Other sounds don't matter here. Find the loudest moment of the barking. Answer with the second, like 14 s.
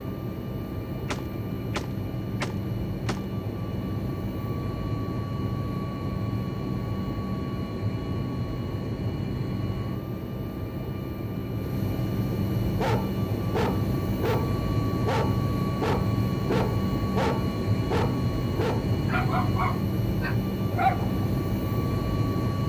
21 s.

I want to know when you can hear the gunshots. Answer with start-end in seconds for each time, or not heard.
1.1-3.2.